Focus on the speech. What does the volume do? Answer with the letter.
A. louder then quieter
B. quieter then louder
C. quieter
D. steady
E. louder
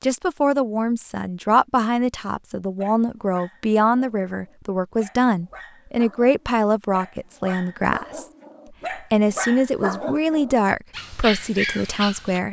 D.